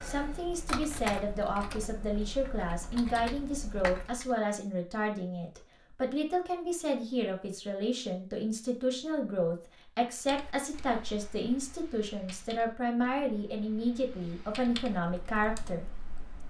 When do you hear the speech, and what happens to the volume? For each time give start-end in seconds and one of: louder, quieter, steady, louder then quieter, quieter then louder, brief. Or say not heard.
0.0-15.8 steady.